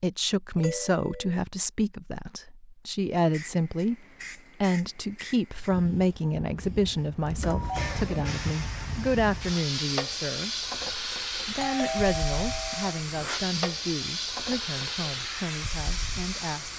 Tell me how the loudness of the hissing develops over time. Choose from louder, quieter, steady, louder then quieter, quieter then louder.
louder.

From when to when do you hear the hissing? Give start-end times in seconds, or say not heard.
3.1-16.7.